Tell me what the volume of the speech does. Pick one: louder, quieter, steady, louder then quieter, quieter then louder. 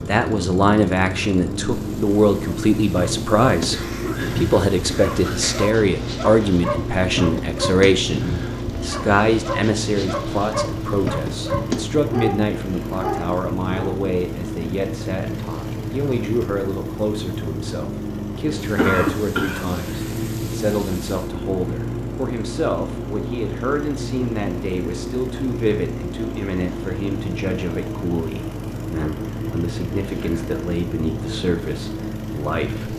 quieter.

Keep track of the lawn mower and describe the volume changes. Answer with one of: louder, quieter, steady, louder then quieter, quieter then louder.
steady.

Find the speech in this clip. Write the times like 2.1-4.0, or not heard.
0.1-32.9.